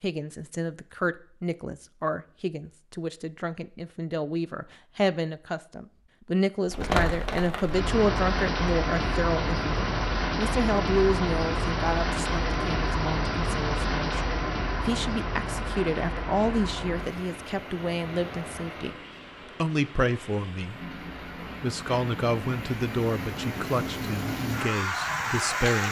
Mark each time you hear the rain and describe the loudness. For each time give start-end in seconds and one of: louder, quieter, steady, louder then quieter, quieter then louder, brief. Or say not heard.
6.7-25.8 quieter then louder.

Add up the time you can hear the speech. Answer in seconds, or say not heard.
24 s.